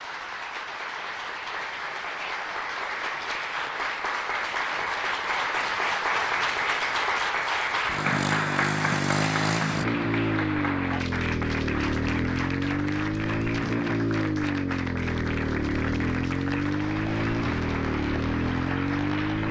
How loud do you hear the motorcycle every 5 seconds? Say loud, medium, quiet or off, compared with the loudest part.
off, loud, loud, loud.